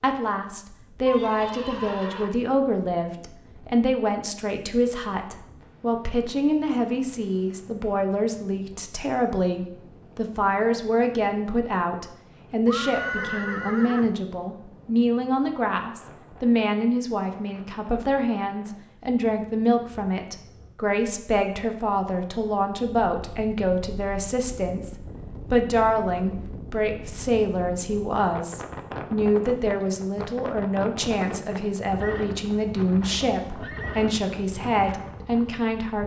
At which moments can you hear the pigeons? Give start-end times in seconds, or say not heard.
not heard.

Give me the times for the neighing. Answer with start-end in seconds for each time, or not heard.
1.1-2.4, 12.7-14.2, 32.0-34.1.